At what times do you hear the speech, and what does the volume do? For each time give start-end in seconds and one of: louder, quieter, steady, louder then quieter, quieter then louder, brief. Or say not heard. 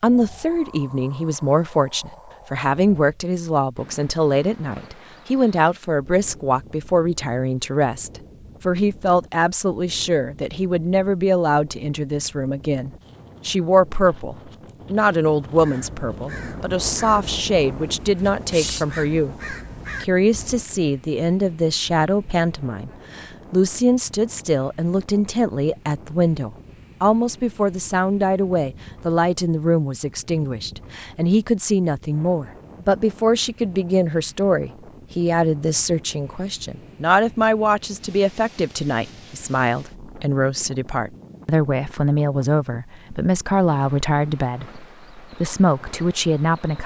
0.0-46.8 steady.